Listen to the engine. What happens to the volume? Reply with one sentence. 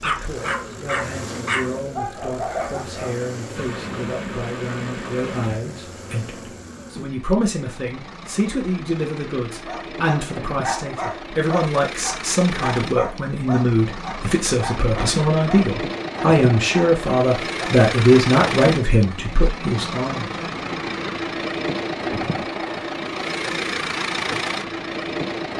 The volume of the engine goes up.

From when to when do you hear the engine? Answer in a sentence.
The engine can be heard from 0.0 to 25.5 s.